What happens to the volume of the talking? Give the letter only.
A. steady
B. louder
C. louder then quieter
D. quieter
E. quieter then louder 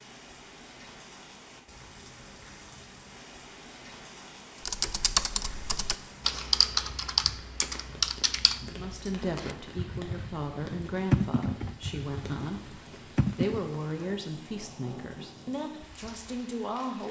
A.